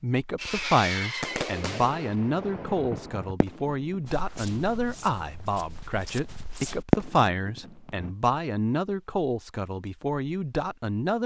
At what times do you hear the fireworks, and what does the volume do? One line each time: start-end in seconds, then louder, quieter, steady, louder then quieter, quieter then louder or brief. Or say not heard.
0.3-5.6 quieter
6.9-8.2 brief.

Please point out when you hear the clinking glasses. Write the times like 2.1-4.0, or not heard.
not heard.